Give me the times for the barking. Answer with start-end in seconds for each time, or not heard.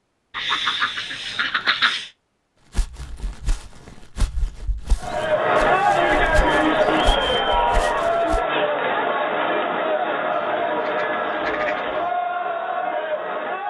not heard.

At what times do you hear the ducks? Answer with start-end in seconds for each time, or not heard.
0.3-2.1, 5.0-7.0, 10.3-12.1.